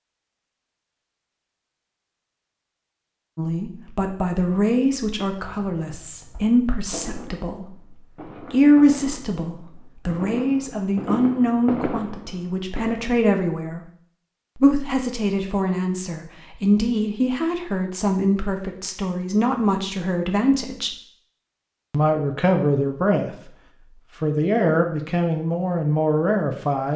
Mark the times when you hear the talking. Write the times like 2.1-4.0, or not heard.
3.4-13.8, 14.6-20.9, 21.9-23.5, 24.2-26.9.